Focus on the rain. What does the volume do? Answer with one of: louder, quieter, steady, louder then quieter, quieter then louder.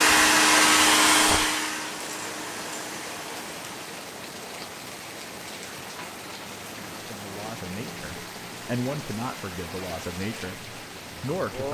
steady.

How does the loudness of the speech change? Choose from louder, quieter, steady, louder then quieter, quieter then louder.
louder then quieter.